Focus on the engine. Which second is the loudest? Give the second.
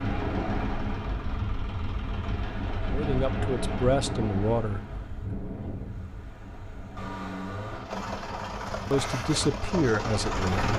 10 s.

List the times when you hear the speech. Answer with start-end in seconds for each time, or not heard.
2.9-4.8, 8.9-10.7.